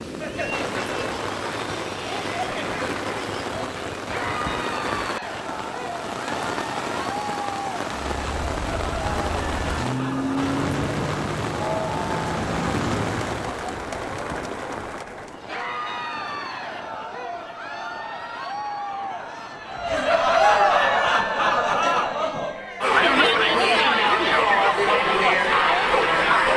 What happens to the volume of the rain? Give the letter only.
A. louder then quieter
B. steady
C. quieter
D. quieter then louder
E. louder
C.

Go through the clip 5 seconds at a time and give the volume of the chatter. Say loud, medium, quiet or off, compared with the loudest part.
quiet, quiet, quiet, quiet, loud, loud.